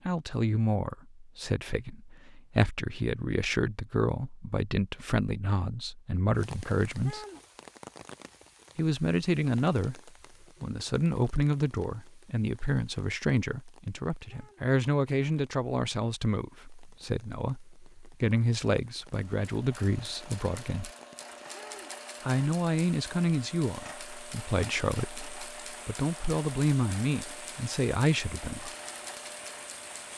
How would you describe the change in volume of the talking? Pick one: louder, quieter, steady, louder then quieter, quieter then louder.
steady.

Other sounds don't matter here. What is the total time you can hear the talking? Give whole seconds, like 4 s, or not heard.
26 s.